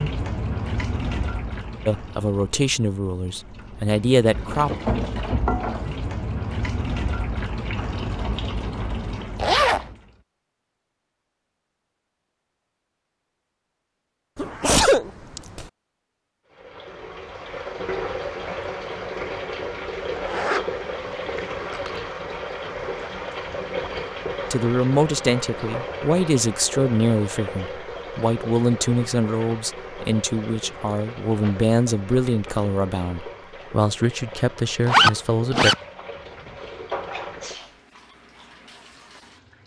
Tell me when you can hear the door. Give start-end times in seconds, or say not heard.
not heard.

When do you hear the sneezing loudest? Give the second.
15 s.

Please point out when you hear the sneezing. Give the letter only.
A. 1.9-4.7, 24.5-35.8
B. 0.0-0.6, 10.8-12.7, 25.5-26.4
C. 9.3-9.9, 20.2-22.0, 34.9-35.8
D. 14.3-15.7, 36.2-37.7
D.